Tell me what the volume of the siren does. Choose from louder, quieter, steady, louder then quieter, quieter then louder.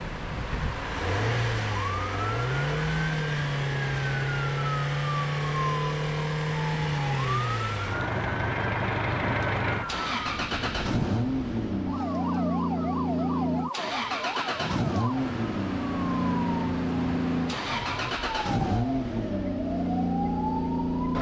steady.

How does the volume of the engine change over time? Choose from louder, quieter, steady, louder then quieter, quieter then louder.
steady.